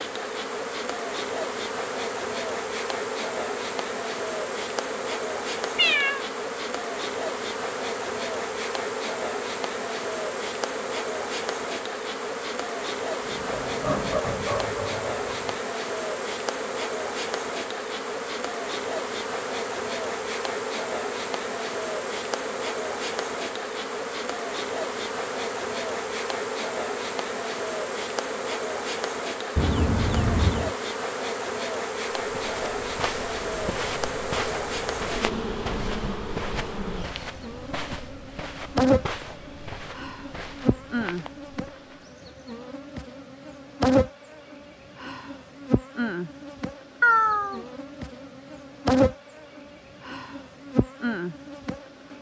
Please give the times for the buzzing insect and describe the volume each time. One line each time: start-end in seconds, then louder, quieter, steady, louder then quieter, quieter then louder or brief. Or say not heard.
0.0-52.1 steady.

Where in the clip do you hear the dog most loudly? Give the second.
14 s.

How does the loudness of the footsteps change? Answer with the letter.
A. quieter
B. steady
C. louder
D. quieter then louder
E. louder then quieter
A.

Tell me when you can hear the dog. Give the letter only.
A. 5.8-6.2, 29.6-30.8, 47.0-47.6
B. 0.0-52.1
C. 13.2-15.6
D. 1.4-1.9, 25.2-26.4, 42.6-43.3
C.